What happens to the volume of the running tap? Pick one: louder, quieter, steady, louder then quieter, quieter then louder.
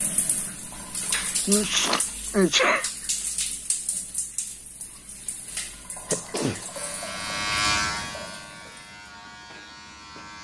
quieter.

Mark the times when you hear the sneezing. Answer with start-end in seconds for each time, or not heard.
1.4-2.9, 6.0-6.7.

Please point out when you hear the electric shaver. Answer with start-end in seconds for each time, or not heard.
6.7-10.3.